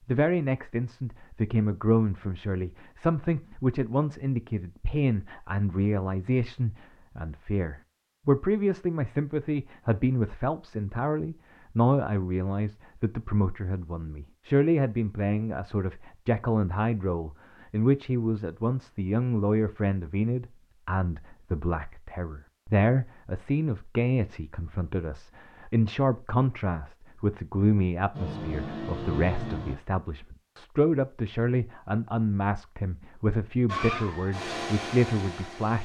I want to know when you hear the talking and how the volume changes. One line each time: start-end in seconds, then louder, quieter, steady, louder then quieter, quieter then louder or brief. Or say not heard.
0.1-35.8 steady.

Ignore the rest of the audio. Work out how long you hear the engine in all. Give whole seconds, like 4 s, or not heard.
4 s.